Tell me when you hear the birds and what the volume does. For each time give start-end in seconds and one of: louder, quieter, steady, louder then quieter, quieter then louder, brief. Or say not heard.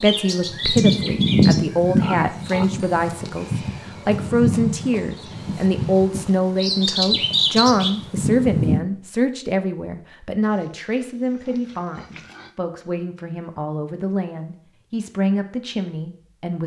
0.0-8.8 quieter then louder.